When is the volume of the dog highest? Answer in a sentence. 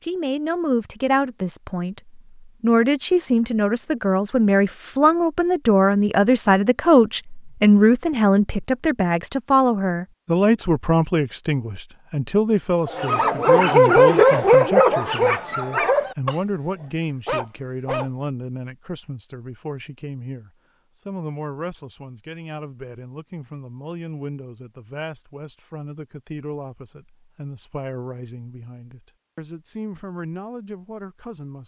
The volume of the dog peaks at 14 seconds.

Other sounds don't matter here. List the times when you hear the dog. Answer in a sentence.
You can hear the dog from 12.8 to 18.1 s.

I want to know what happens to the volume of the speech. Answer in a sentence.
The loudness of the speech goes down.